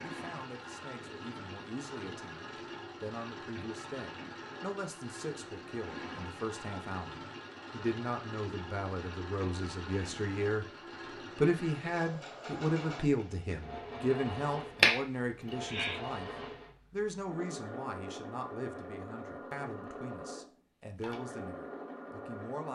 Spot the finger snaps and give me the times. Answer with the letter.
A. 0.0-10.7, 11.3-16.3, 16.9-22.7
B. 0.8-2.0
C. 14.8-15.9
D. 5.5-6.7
C.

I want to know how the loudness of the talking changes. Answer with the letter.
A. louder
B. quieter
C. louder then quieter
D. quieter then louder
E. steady
C.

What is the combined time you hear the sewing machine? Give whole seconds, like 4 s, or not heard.
23 s.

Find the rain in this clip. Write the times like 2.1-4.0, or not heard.
not heard.